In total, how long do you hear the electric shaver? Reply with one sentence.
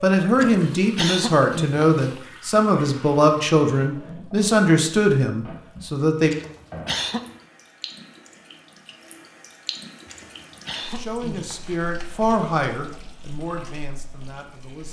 The electric shaver can't be heard in this clip.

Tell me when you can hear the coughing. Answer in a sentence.
The coughing can be heard from 0.3 to 2.2 s, from 6.2 to 7.3 s and from 10.1 to 11.8 s.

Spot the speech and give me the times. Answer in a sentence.
You can hear the speech from 0.0 to 6.3 s and from 10.9 to 14.8 s.